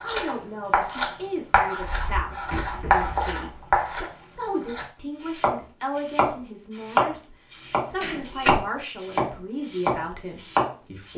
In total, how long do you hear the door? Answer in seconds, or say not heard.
2 s.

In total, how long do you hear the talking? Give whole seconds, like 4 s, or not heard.
11 s.